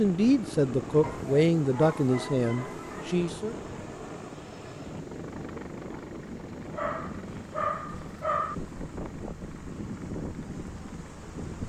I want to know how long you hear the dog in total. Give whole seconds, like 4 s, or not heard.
4 s.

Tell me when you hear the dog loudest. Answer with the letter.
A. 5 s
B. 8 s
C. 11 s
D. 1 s
B.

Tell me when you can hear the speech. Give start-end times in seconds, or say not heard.
0.0-3.5.